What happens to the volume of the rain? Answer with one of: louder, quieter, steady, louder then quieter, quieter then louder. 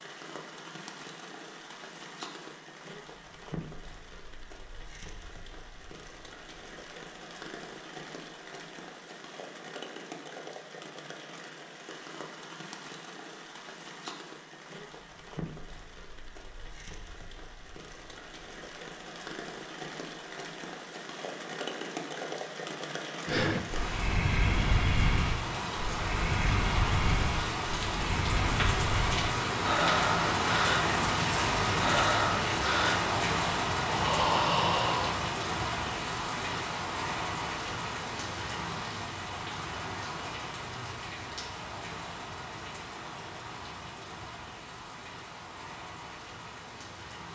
louder then quieter.